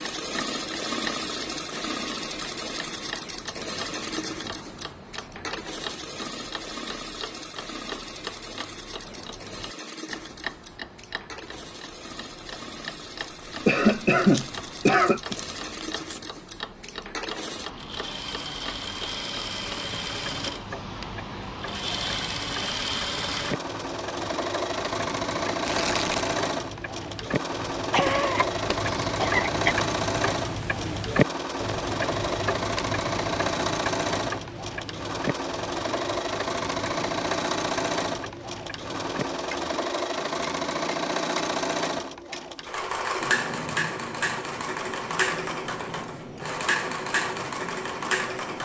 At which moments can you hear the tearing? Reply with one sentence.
You can hear the tearing from 14.3 to 16.2 s and from 25.6 to 26.4 s.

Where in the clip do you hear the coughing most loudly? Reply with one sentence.
The volume of the coughing peaks at 14 seconds.